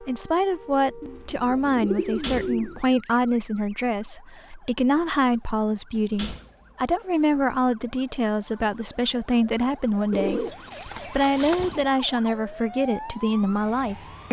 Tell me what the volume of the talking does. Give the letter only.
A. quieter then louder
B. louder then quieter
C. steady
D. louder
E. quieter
C.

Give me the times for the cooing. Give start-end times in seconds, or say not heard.
1.0-2.9, 10.1-11.8.